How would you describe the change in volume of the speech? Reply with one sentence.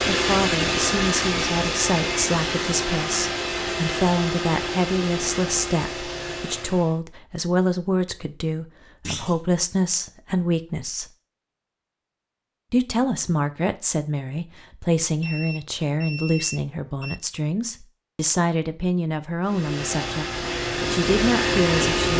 The loudness of the speech stays about the same.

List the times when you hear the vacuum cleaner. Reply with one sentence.
The vacuum cleaner can be heard from 0.0 to 7.0 s and from 19.4 to 22.1 s.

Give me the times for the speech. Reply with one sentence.
You can hear the speech from 0.1 to 11.1 s and from 12.7 to 22.1 s.